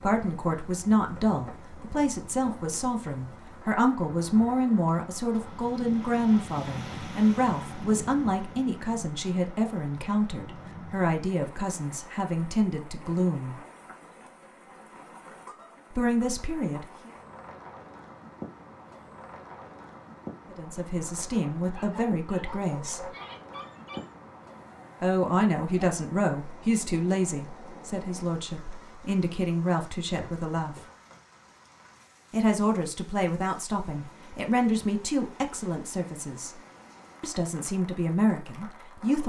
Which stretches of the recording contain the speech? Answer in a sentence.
You can hear the speech from 0.0 to 13.6 s, from 15.9 to 17.1 s, from 20.5 to 23.1 s, from 25.0 to 30.8 s, from 32.3 to 36.5 s and from 37.2 to 39.2 s.